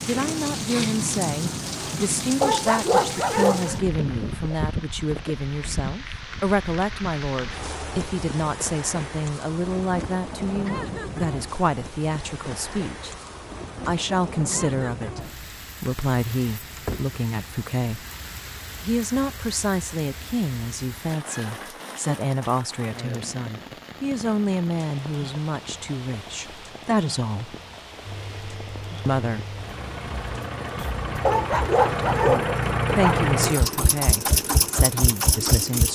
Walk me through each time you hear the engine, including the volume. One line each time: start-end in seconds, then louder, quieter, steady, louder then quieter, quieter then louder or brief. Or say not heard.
28.1-35.9 louder.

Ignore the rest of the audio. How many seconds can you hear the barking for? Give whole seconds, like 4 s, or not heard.
3 s.